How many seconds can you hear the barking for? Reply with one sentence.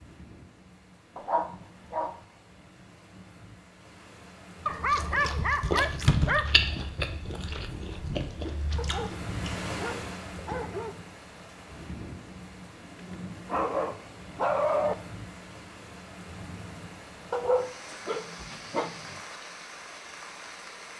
You can hear the barking for 9 seconds altogether.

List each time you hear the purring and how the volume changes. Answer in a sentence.
The purring can't be heard in this clip.